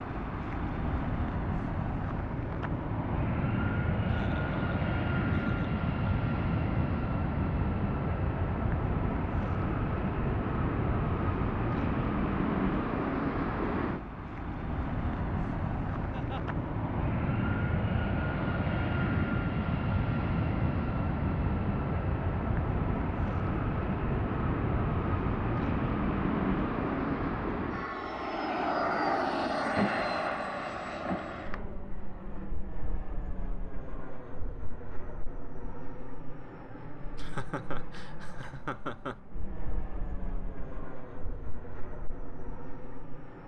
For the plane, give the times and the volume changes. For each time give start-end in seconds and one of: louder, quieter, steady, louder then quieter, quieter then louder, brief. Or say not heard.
0.0-43.4 quieter.